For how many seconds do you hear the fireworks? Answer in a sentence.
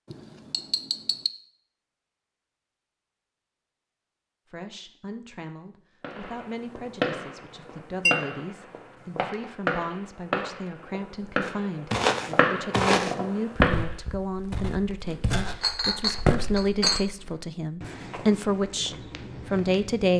You can hear the fireworks for 8 seconds altogether.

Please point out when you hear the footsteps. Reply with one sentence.
You can hear the footsteps from 11.4 to 20.1 s.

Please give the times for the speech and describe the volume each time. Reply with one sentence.
The speech can be heard from 4.5 to 20.1 s, getting louder.